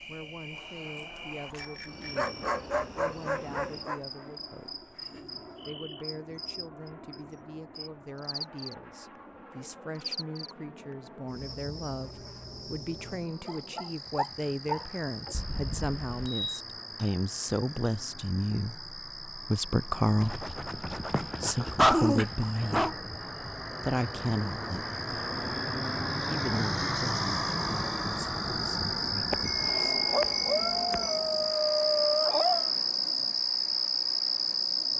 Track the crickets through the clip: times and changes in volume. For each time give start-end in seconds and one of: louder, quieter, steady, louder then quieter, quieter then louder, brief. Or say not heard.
0.0-34.9 louder.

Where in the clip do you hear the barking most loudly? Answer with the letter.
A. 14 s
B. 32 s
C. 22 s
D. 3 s
C.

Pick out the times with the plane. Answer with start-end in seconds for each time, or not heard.
0.0-34.9.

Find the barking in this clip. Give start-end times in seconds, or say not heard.
2.1-4.0, 13.4-15.3, 20.2-22.9, 30.1-32.7.